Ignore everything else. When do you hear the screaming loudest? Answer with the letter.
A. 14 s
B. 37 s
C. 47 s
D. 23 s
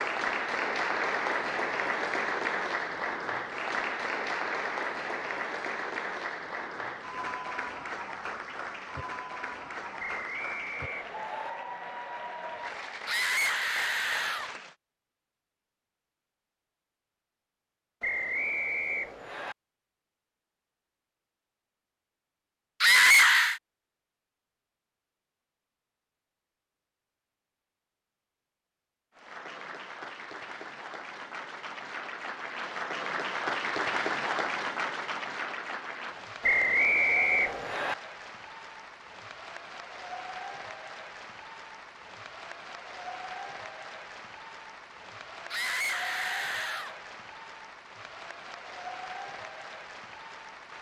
D.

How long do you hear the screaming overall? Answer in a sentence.
The screaming can be heard for 4 seconds in total.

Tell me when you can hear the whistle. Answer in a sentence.
You can hear the whistle from 9.9 to 11.5 s, from 18.0 to 19.6 s and from 36.4 to 38.0 s.